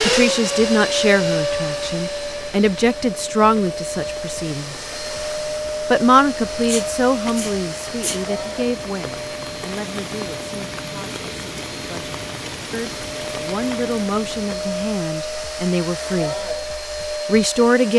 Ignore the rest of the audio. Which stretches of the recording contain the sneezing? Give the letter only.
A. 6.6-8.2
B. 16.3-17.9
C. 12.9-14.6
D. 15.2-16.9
A.